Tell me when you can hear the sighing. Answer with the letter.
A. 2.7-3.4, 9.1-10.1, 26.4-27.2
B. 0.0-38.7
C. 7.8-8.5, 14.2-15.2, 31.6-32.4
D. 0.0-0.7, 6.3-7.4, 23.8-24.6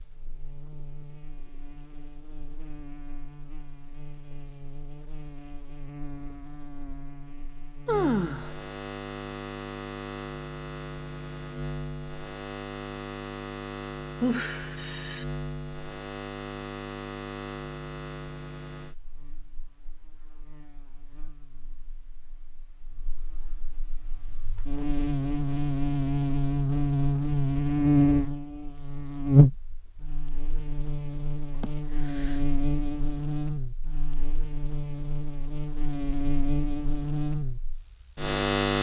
C.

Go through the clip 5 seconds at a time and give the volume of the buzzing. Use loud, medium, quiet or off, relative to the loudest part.
quiet, quiet, quiet, quiet, quiet, loud, medium, medium.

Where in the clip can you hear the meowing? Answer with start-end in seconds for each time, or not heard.
not heard.